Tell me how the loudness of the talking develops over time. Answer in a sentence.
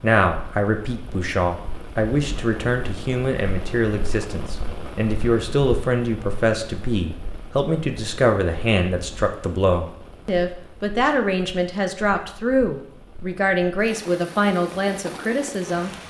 The loudness of the talking stays about the same.